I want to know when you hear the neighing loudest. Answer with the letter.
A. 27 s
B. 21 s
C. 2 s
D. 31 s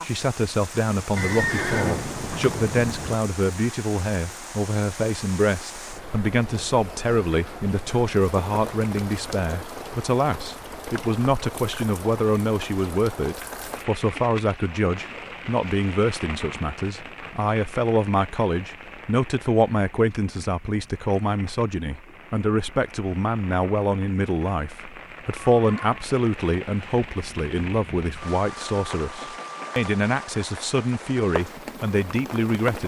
C.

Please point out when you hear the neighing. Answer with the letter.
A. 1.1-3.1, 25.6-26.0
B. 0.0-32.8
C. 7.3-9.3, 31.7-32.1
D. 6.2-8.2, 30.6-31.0
A.